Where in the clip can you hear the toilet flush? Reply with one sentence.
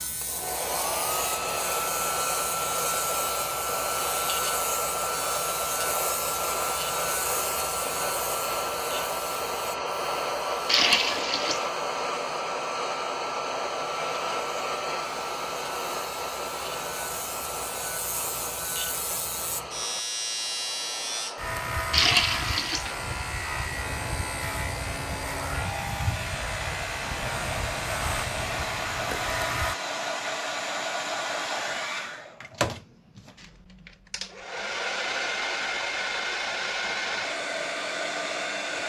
The toilet flush can be heard from 10.7 to 11.7 s and from 21.9 to 22.9 s.